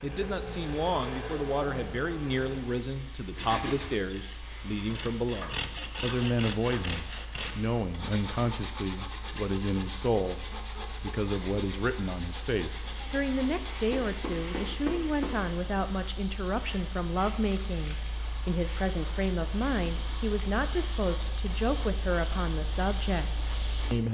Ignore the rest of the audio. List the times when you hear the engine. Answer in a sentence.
You can hear the engine from 0.0 to 2.9 s.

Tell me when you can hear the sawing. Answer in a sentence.
The sawing can be heard from 3.4 to 14.2 s.